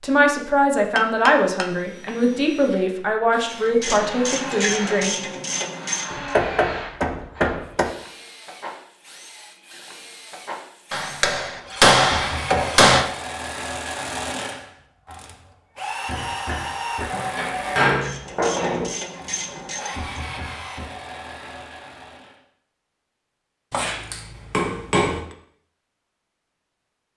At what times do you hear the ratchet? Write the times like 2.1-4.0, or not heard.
3.5-6.3, 17.9-20.1.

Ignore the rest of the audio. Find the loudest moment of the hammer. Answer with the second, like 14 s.
12 s.